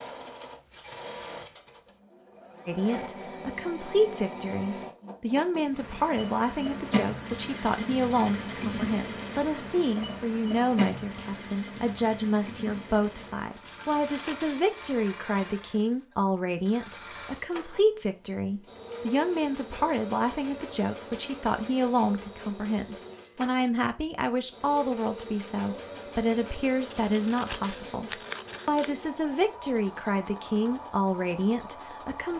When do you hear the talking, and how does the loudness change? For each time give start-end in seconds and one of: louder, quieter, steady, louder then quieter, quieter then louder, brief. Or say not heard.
2.6-32.3 steady.